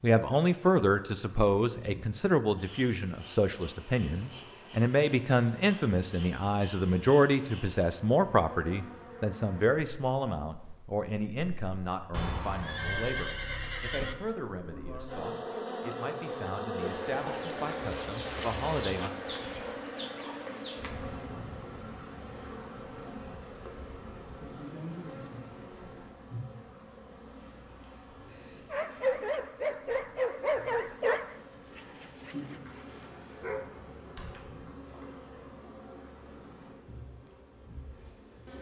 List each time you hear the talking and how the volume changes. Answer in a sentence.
The talking can be heard from 0.0 to 19.1 s, getting quieter.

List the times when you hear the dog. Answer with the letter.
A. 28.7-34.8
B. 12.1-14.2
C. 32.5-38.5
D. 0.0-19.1
A.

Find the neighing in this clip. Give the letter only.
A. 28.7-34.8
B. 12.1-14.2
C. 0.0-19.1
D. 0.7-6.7
B.